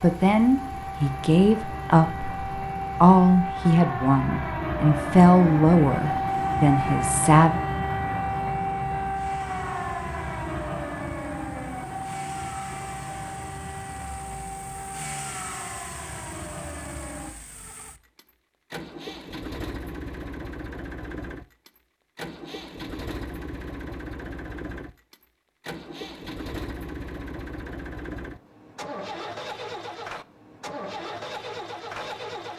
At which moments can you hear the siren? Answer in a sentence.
You can hear the siren from 0.0 to 17.3 s.